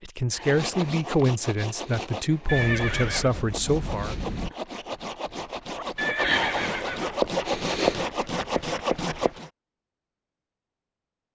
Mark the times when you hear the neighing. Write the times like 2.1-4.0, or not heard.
2.5-3.3, 6.0-7.2.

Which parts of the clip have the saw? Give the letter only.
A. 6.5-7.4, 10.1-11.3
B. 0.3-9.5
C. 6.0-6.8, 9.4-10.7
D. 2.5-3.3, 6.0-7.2
B.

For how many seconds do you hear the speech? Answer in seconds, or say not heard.
4 s.